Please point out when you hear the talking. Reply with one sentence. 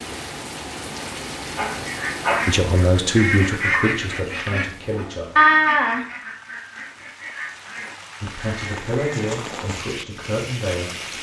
The talking can be heard from 2.5 to 5.4 s and from 8.2 to 11.1 s.